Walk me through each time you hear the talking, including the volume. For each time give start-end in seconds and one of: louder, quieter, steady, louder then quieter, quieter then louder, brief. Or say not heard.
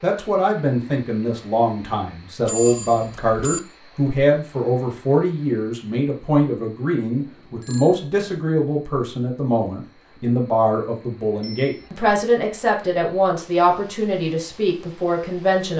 0.0-15.7 steady.